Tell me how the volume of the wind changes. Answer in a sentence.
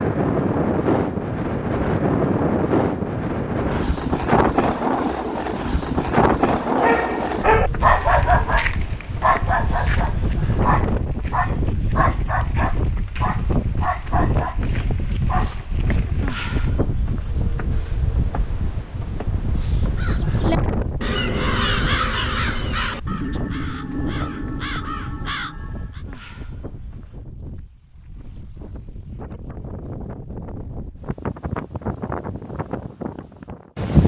The volume of the wind goes down.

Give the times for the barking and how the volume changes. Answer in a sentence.
The barking can be heard from 6.7 to 16.4 s, getting quieter.